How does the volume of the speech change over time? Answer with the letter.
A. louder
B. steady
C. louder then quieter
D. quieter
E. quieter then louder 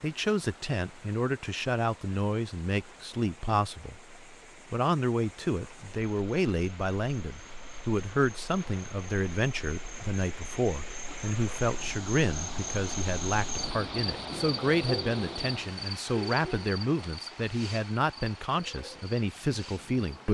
B.